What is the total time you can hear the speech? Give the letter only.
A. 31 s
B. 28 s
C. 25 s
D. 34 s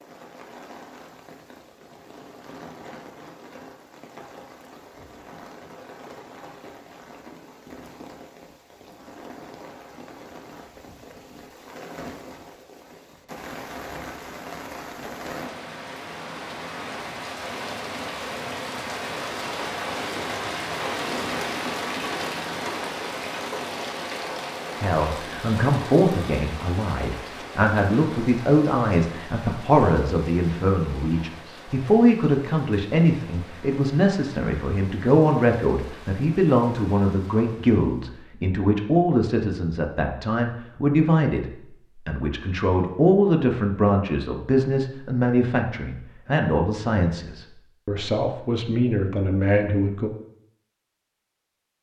C.